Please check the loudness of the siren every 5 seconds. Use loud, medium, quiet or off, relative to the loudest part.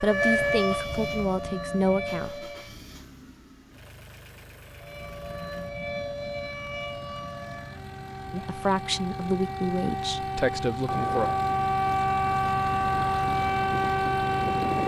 loud, medium, loud.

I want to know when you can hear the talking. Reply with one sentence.
You can hear the talking from 0.0 to 2.5 s and from 8.3 to 11.3 s.